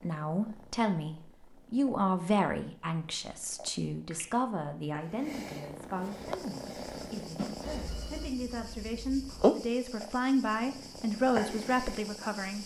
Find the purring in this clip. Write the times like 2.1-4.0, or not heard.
0.0-8.3, 9.4-12.6.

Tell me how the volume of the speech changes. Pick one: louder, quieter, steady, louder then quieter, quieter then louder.
quieter then louder.